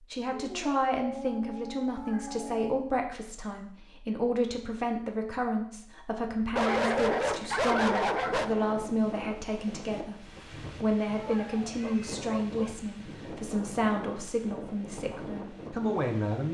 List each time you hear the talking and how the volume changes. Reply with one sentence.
You can hear the talking from 0.0 to 16.4 s, at a steady volume.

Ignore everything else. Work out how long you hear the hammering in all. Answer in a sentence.
The hammering can't be heard in this clip.